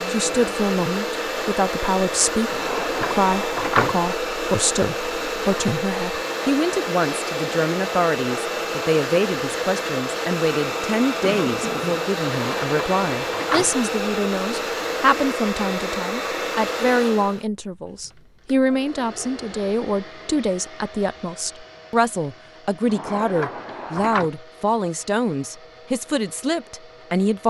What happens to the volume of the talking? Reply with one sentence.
The volume of the talking stays about the same.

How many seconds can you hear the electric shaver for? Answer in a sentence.
The electric shaver can't be heard in this clip.